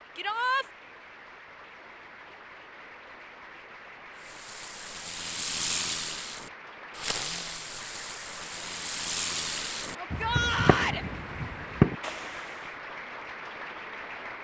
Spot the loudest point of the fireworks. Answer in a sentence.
The loudest moment of the fireworks is at 12 seconds.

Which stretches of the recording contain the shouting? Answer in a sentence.
You can hear the shouting from 0.1 to 0.7 s and from 9.9 to 11.1 s.